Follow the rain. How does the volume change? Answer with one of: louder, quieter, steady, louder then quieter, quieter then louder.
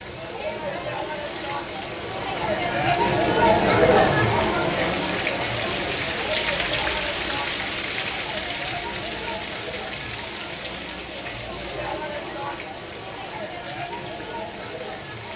louder then quieter.